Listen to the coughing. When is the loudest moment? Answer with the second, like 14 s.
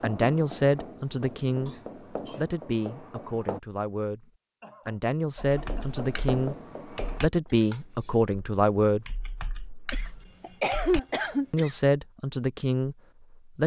11 s.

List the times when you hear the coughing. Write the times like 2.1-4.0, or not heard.
1.6-2.5, 4.6-6.0, 9.9-11.8.